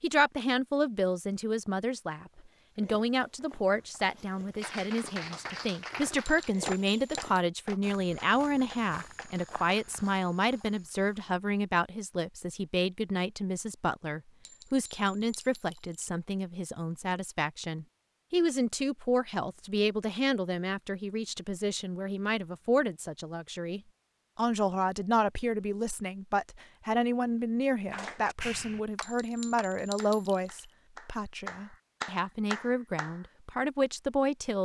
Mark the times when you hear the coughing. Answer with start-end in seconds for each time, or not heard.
not heard.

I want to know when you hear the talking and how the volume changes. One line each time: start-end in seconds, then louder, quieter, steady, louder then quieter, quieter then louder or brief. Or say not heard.
0.0-34.6 steady.